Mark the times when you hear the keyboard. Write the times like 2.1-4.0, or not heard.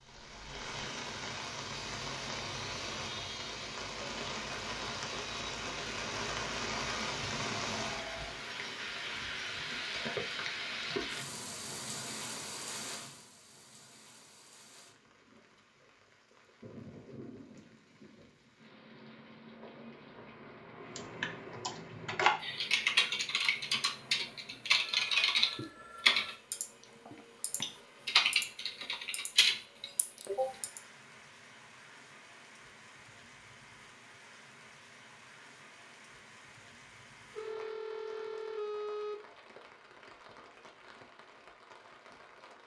20.9-30.8.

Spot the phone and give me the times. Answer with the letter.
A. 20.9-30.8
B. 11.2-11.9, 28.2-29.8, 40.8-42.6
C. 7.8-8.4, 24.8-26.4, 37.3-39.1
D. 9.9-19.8
C.